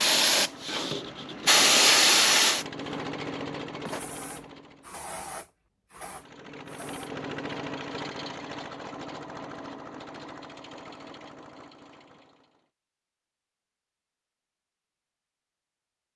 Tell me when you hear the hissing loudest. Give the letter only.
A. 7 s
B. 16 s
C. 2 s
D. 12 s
C.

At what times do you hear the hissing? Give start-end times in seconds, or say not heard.
0.0-7.1.